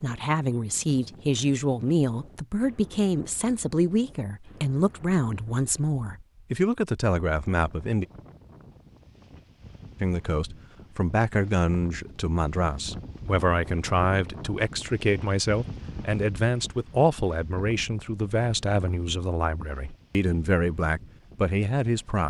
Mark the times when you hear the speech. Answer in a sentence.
You can hear the speech from 0.0 to 8.1 s and from 10.0 to 22.2 s.